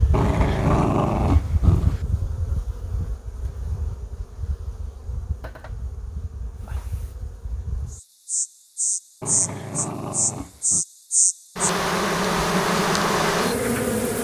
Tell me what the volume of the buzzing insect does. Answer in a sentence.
The loudness of the buzzing insect goes down, then up.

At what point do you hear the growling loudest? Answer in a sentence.
The volume of the growling peaks at 1 second.